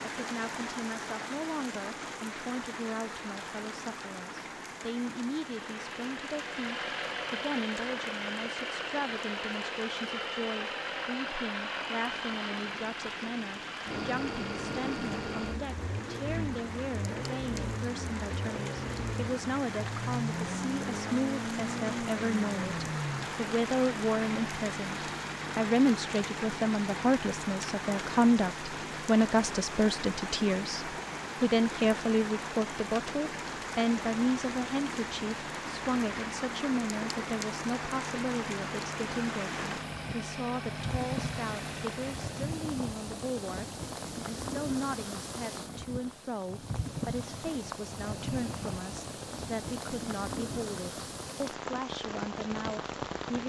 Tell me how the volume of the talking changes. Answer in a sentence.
The loudness of the talking goes up, then down.